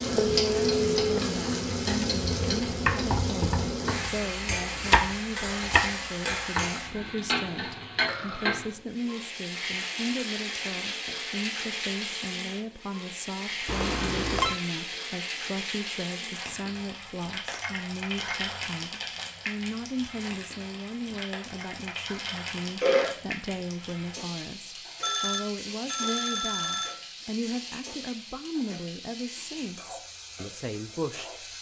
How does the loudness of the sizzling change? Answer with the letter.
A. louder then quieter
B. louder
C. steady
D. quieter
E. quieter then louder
D.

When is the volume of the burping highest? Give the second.
23 s.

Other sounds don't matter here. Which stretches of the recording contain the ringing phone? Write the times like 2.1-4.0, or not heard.
0.1-1.4, 13.7-14.6, 25.0-26.9.